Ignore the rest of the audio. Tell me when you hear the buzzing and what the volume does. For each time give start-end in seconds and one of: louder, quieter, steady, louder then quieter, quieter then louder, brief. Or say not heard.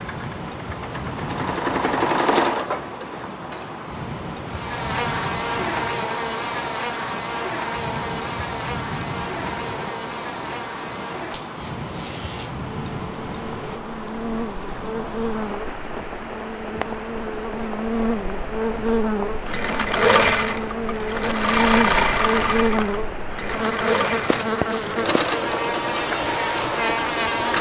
4.5-27.5 quieter then louder.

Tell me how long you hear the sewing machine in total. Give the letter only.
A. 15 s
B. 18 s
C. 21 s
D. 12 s
D.